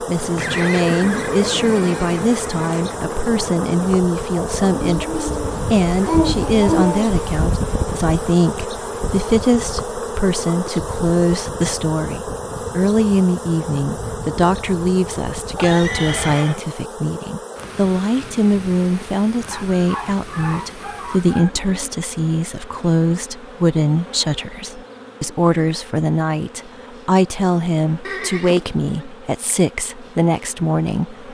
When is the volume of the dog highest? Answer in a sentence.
The volume of the dog peaks at 6 seconds.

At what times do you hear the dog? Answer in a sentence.
You can hear the dog from 4.5 to 7.2 s and from 19.5 to 21.5 s.